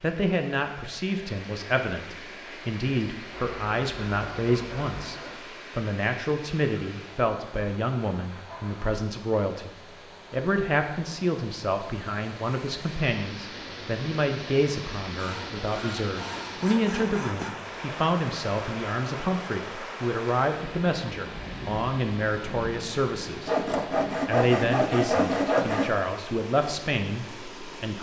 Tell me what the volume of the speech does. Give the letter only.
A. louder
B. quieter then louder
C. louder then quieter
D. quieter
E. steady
E.